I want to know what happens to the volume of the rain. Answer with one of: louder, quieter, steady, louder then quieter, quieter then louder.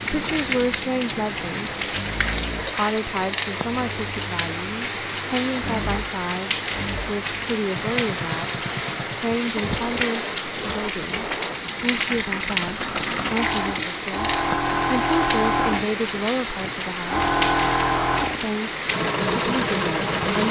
steady.